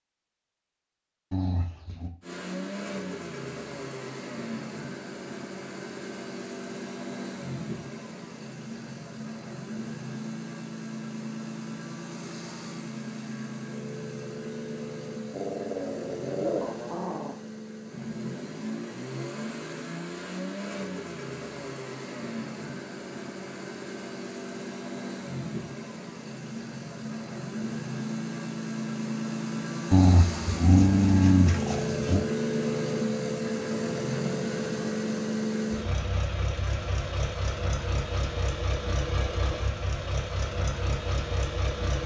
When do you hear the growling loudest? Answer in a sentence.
The volume of the growling peaks at 31 seconds.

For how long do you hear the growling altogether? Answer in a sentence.
You can hear the growling for 5 seconds altogether.